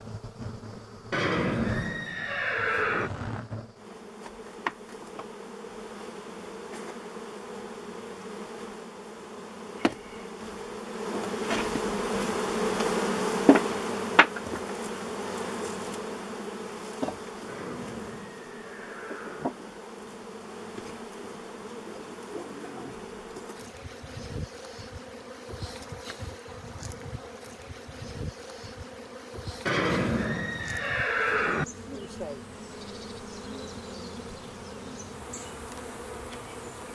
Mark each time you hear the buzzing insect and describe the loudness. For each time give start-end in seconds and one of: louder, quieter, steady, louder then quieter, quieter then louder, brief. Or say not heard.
0.0-36.9 louder then quieter.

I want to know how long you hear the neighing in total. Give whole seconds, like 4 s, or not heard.
6 s.